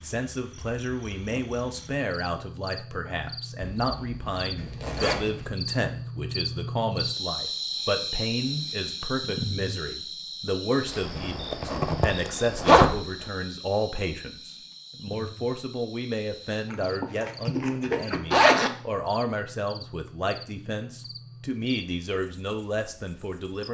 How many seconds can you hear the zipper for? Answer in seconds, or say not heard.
6 s.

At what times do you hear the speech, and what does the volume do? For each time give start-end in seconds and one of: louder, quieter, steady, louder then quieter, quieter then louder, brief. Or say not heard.
0.0-23.6 steady.